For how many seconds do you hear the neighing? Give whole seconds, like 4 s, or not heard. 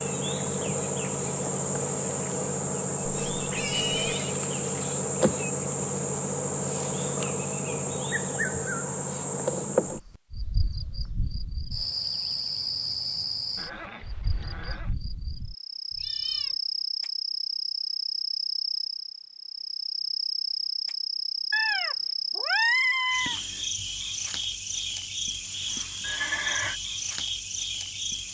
3 s.